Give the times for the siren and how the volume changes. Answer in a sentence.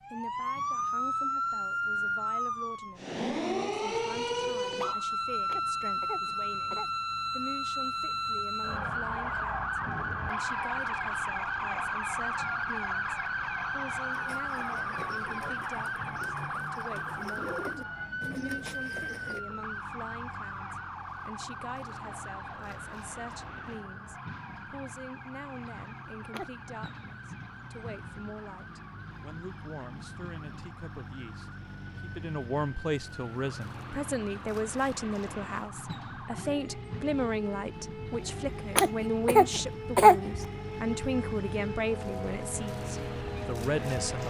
The siren can be heard from 0.0 to 44.2 s, getting quieter then louder.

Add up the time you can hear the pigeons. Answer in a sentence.
The pigeons can be heard for 5 seconds in total.